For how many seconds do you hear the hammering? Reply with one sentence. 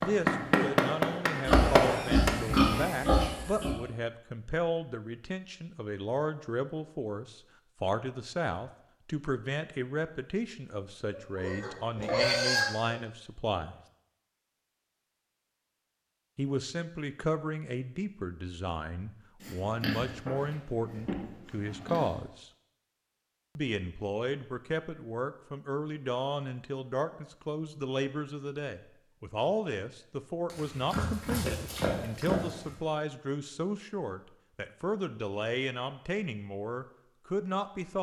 You can hear the hammering for 2 seconds altogether.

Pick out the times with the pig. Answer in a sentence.
You can hear the pig from 1.4 to 3.8 s, from 11.1 to 13.0 s, from 19.4 to 22.1 s and from 30.5 to 32.7 s.